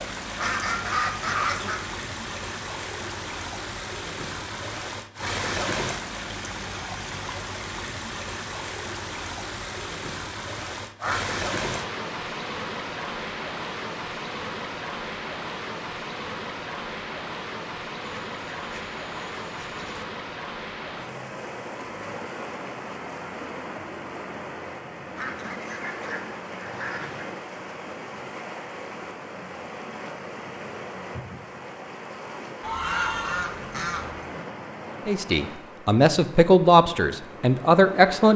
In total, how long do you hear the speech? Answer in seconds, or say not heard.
3 s.